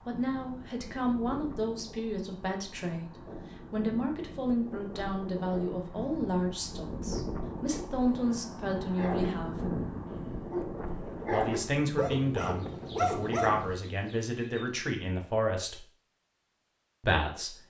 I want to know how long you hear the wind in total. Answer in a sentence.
The wind can be heard for 14 seconds in total.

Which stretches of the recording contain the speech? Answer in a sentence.
You can hear the speech from 0.1 to 9.6 s, from 11.3 to 15.8 s and from 17.0 to 17.6 s.